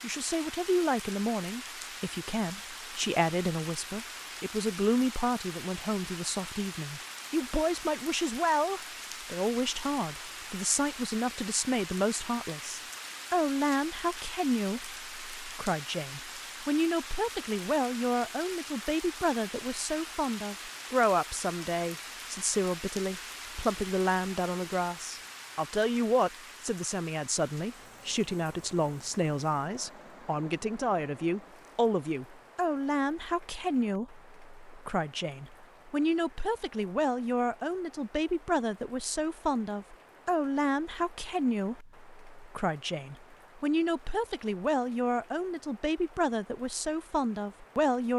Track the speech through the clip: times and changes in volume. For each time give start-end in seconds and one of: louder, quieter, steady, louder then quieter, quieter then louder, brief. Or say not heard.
0.0-48.1 steady.